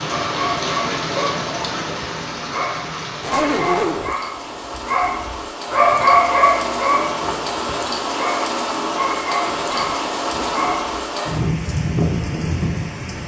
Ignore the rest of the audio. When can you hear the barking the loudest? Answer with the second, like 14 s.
6 s.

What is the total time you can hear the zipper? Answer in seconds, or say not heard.
2 s.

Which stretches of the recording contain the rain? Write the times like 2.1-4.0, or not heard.
0.0-13.2.